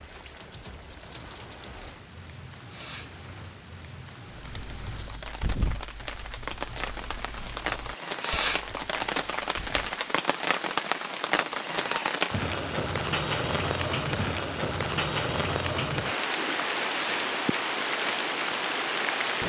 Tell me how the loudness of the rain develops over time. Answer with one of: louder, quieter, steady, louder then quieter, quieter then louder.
louder.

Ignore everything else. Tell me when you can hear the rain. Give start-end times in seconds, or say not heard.
0.0-19.4.